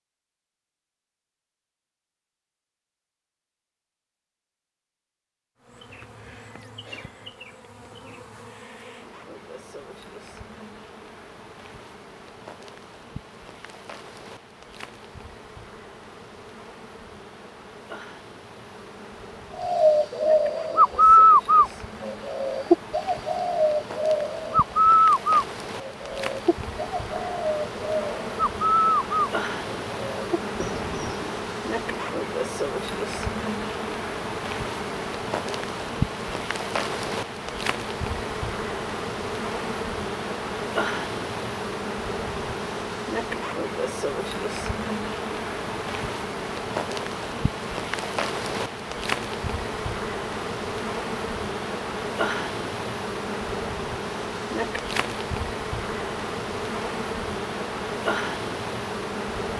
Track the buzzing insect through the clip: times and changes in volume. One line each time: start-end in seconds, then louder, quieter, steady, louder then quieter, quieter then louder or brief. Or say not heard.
5.6-59.5 louder.